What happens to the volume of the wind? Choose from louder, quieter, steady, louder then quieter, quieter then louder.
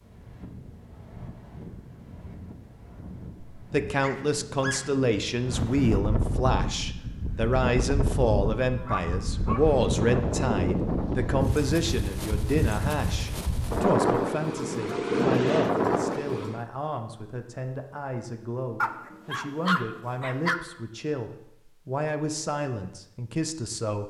louder.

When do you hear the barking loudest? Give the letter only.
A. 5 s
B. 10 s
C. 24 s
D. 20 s
D.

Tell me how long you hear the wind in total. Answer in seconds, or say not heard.
17 s.